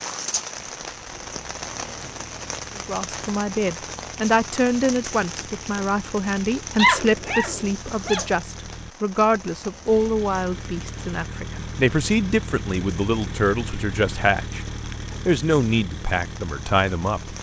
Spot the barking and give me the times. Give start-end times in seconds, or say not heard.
6.8-8.2.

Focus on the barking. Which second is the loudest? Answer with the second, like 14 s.
7 s.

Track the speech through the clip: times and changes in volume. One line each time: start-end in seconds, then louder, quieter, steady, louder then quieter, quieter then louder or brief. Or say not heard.
2.8-17.3 steady.